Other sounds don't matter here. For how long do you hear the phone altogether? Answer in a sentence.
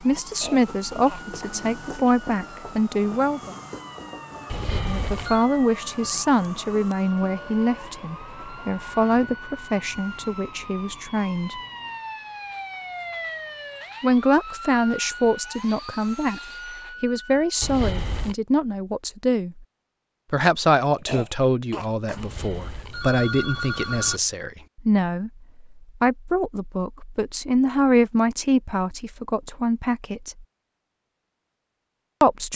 The phone can be heard for 4 seconds in total.